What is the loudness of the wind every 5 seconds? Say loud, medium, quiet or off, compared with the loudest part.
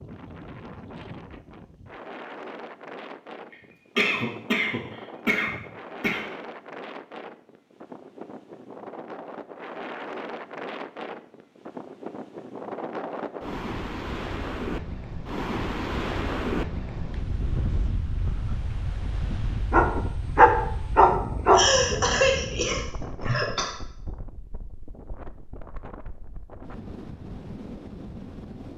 medium, medium, loud, loud, medium, medium.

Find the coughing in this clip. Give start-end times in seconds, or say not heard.
3.5-6.2, 21.5-23.7.